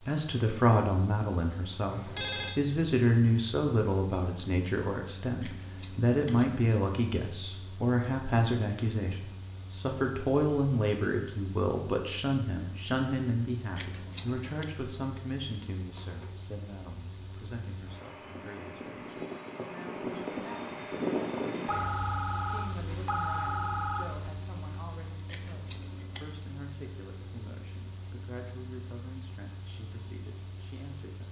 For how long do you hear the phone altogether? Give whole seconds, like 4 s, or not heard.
4 s.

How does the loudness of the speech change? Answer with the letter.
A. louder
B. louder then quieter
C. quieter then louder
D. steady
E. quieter
E.